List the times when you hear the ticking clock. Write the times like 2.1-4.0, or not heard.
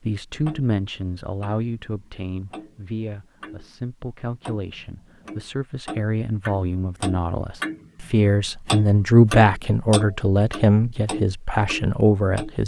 0.3-3.8, 4.4-12.6.